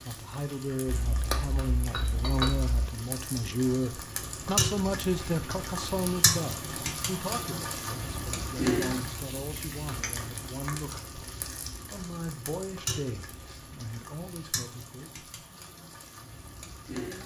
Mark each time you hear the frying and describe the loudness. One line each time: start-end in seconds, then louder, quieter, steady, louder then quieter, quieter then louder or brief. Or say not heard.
0.0-17.2 louder then quieter.